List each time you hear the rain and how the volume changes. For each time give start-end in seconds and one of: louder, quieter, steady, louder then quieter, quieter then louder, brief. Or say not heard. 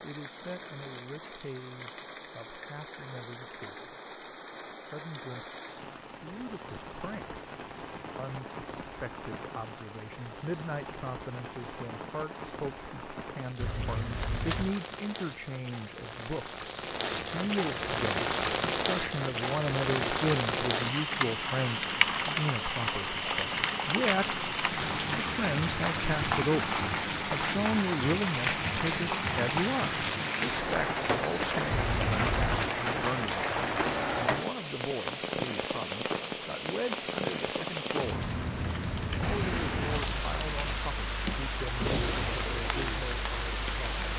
0.0-44.1 louder.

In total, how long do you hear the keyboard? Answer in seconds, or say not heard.
not heard.